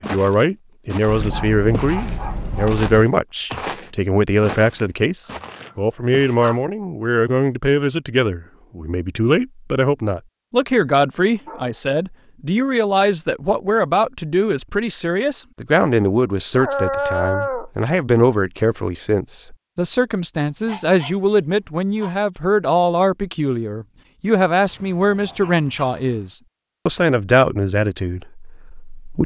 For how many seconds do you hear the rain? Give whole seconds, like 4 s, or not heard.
not heard.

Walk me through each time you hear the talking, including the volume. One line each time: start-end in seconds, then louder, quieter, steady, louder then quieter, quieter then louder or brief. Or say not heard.
0.1-29.2 steady.